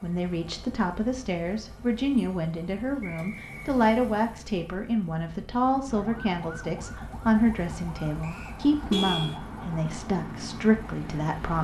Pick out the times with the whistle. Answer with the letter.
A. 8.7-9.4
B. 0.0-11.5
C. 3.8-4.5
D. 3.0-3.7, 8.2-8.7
D.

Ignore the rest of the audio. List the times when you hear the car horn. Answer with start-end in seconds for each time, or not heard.
8.7-9.4.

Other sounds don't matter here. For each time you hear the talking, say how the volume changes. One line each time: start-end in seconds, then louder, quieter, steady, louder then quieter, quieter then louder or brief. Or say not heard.
0.0-11.5 steady.